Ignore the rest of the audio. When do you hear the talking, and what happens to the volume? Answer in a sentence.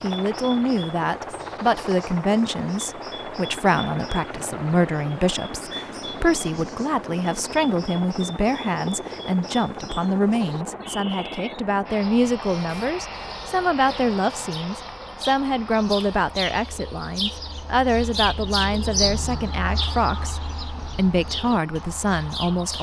The talking can be heard from 0.0 to 22.7 s, at a steady volume.